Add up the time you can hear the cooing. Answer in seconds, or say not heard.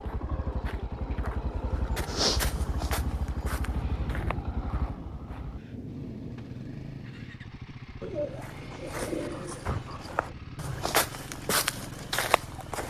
2 s.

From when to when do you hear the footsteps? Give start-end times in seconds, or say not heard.
0.0-5.5, 8.3-12.8.